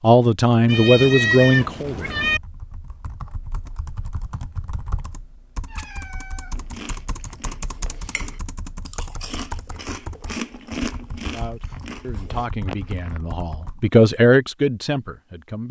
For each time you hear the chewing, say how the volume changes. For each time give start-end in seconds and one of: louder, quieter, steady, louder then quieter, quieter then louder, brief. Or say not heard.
6.5-12.4 louder then quieter.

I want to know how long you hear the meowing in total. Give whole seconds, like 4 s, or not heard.
3 s.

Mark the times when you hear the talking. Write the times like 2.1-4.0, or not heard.
0.0-2.1, 11.3-15.6.